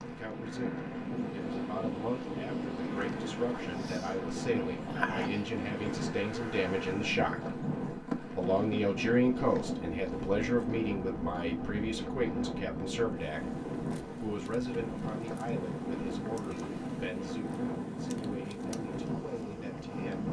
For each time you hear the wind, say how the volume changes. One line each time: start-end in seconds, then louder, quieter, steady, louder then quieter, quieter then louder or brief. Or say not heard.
0.0-20.2 steady.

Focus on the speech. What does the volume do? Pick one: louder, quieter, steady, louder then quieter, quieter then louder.
louder then quieter.